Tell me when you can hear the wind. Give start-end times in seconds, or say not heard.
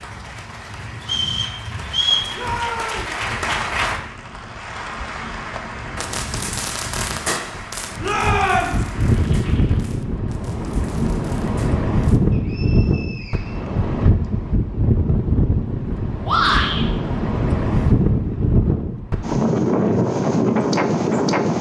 0.0-21.5.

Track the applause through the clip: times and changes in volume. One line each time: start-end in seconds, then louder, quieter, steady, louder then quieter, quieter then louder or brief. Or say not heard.
0.0-10.1 louder then quieter.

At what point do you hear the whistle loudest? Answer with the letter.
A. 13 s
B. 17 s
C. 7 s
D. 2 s
D.